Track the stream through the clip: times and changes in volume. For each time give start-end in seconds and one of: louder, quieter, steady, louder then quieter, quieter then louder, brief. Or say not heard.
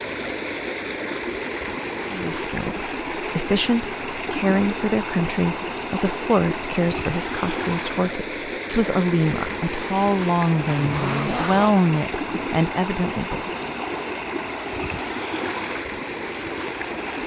0.0-17.2 steady.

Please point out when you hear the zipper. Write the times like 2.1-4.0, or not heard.
10.6-11.8.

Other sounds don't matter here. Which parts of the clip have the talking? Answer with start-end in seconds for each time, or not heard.
2.0-13.7.